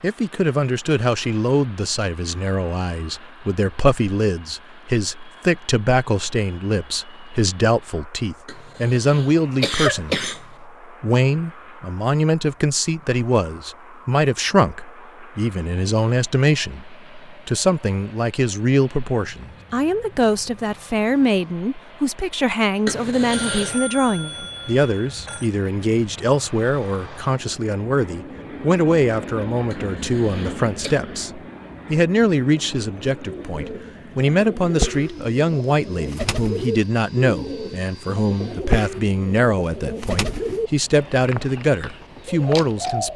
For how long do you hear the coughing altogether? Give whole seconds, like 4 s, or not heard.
4 s.